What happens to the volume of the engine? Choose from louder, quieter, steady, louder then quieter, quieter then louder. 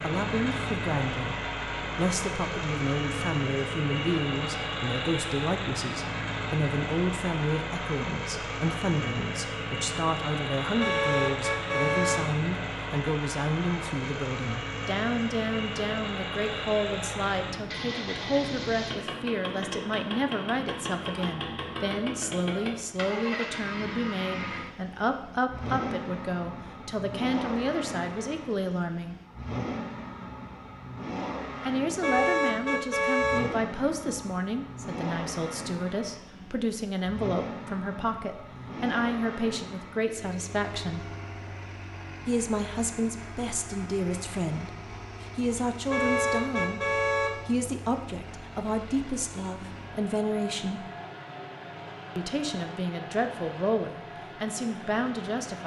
quieter.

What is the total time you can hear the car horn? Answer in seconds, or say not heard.
4 s.